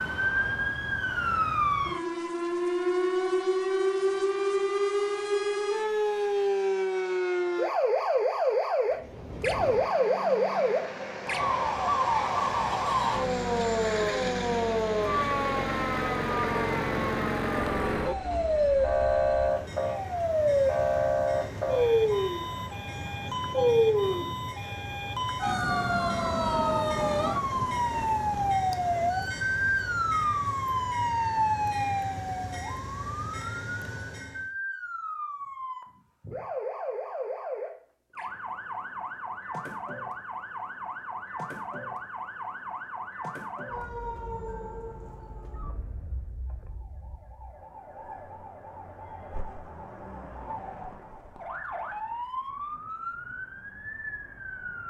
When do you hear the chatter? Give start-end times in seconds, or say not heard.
not heard.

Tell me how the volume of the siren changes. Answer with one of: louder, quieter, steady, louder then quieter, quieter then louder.
quieter.